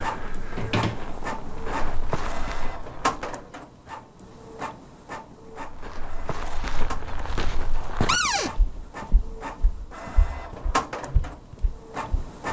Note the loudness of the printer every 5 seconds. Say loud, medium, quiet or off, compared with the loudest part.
loud, medium, loud.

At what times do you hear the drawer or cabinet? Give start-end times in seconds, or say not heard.
0.5-1.6, 8.1-8.5.